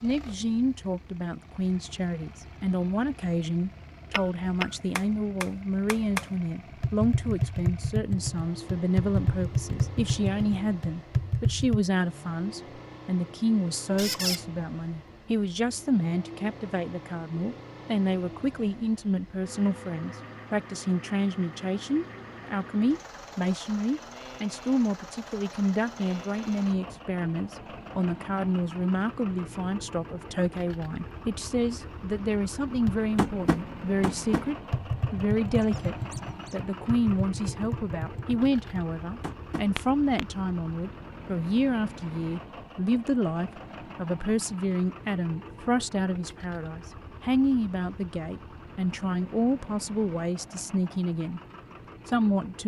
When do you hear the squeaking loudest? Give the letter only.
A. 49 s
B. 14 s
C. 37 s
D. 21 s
B.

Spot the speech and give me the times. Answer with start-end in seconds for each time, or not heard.
0.0-51.4, 52.0-52.6.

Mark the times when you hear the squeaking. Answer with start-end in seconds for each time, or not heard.
13.9-14.4, 35.5-36.6.